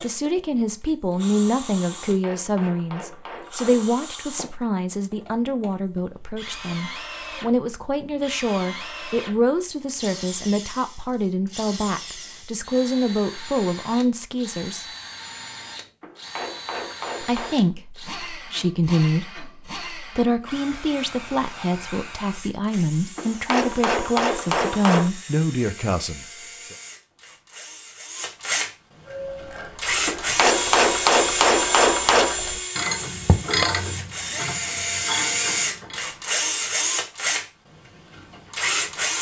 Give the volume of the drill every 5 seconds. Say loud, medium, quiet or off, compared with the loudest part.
quiet, quiet, quiet, quiet, quiet, medium, loud, loud.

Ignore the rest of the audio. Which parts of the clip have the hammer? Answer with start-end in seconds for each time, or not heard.
2.0-4.0, 16.0-17.6, 23.1-25.1, 30.1-32.4.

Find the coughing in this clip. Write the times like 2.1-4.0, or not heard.
not heard.